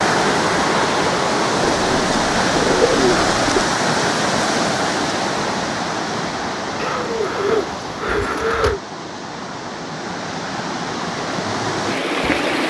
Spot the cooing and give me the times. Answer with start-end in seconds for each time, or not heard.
1.6-3.6, 6.8-8.8.